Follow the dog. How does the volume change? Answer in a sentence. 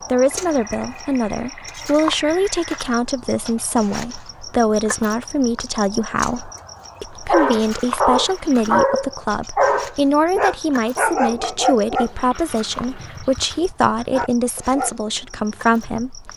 The volume of the dog goes down, then up.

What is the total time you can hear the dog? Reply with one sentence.
You can hear the dog for 9 seconds altogether.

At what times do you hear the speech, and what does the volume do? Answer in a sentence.
You can hear the speech from 0.1 to 16.3 s, at a steady volume.